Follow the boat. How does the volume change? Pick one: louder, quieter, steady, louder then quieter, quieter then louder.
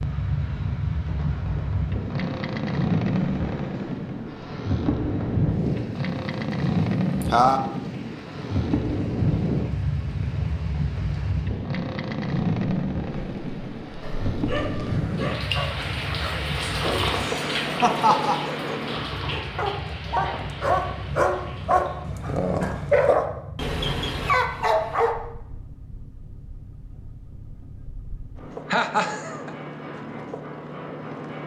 quieter.